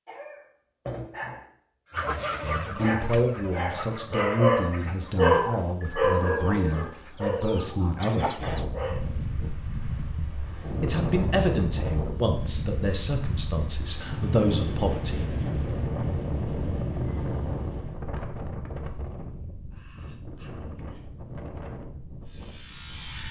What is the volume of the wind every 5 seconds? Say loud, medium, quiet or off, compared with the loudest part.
off, loud, loud, loud, medium.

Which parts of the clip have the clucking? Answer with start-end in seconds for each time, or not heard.
1.9-8.7.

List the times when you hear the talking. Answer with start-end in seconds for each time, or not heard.
2.4-8.4, 10.8-15.3.